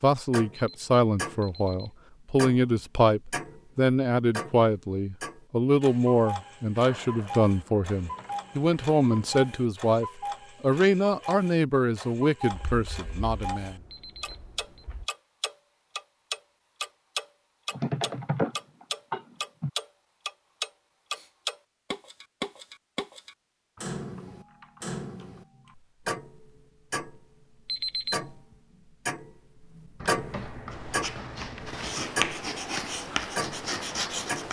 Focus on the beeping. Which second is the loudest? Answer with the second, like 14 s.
28 s.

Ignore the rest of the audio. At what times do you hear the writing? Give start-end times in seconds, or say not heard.
30.7-34.4.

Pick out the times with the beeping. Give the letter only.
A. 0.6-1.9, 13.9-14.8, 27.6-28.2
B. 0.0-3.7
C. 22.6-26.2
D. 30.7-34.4
A.